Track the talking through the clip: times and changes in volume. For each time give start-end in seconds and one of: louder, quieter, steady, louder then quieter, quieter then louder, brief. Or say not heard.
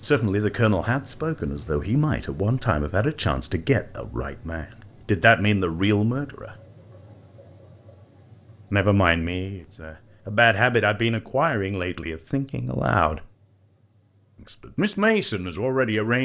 0.0-6.5 quieter then louder
8.7-13.2 louder then quieter
14.4-16.1 brief.